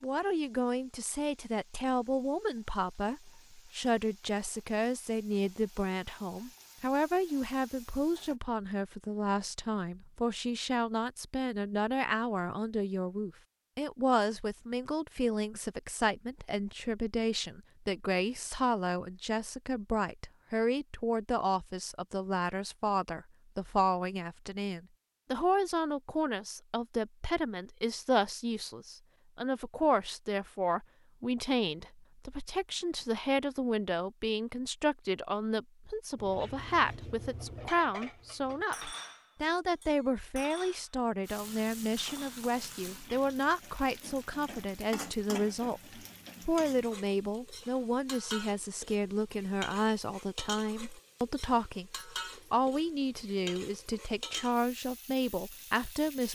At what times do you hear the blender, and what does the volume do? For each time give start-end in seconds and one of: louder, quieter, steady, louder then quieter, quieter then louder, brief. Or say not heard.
not heard.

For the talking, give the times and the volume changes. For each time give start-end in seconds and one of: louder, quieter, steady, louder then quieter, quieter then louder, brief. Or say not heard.
0.0-56.3 steady.